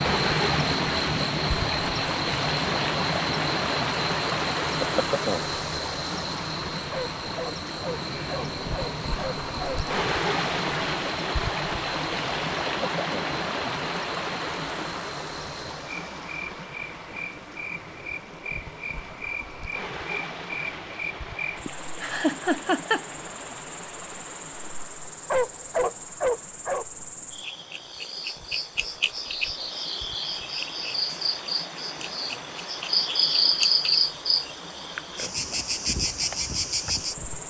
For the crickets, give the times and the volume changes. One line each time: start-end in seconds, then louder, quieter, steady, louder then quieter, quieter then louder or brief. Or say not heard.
0.0-37.4 quieter then louder.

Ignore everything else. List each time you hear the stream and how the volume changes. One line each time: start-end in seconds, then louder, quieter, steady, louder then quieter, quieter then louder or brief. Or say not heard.
0.0-37.4 quieter.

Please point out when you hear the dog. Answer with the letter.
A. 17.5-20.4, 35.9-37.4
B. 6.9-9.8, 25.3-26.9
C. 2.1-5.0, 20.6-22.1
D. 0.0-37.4
B.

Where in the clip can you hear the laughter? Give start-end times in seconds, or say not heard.
21.6-23.3.